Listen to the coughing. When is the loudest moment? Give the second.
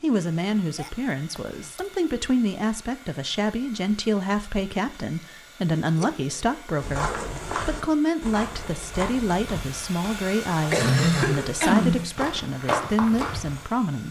11 s.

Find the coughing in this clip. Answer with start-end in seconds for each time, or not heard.
0.8-1.9, 5.8-6.7, 10.7-12.2.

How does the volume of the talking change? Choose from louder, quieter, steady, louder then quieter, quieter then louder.
steady.